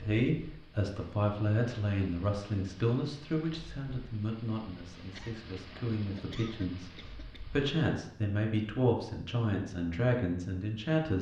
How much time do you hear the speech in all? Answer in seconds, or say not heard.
11 s.